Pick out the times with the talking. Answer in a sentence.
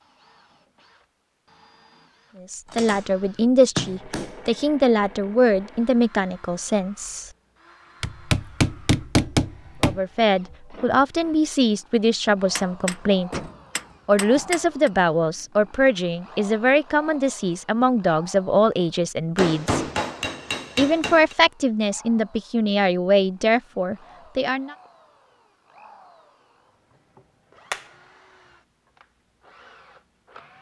You can hear the talking from 2.4 to 7.3 s, from 9.8 to 13.4 s, from 14.1 to 19.8 s and from 20.8 to 24.8 s.